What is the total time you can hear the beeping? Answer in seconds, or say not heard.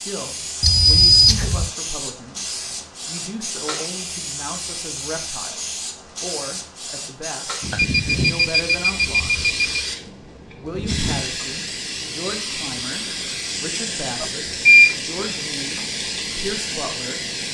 4 s.